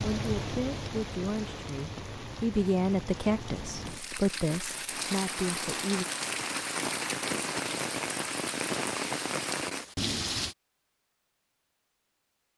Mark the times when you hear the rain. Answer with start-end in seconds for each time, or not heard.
0.0-10.6.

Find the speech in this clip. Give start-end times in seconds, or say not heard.
0.0-6.0.